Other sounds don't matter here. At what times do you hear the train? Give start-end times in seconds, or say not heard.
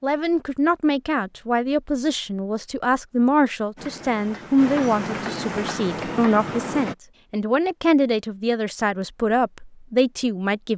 3.8-7.0.